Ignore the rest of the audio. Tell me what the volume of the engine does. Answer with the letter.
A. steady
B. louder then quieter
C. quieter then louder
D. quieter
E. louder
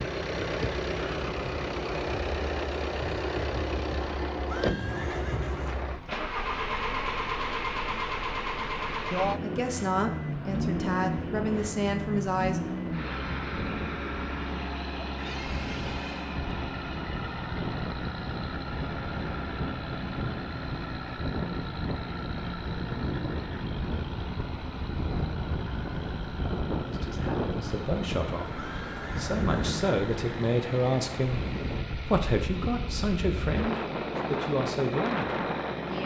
D.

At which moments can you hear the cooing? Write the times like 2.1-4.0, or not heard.
not heard.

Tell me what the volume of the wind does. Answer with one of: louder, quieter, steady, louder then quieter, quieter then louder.
louder.